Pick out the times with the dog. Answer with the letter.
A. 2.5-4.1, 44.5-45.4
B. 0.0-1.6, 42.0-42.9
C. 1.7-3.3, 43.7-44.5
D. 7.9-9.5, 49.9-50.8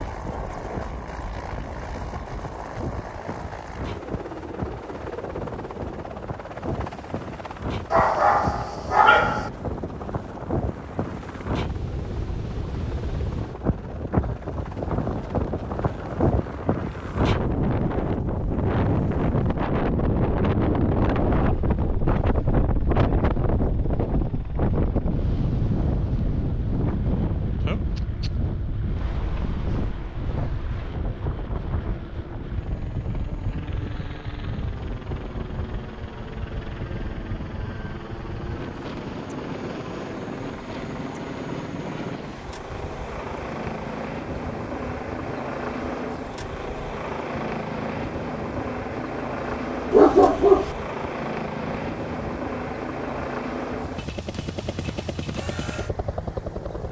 D.